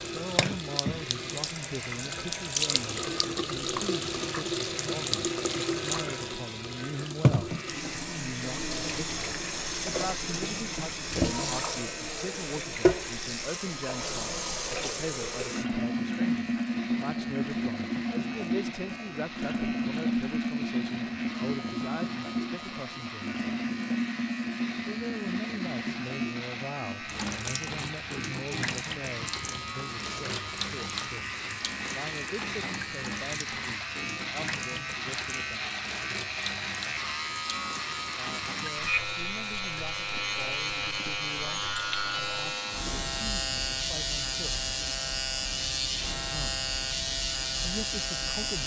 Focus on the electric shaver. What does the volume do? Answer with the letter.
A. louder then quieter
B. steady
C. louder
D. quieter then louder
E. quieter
C.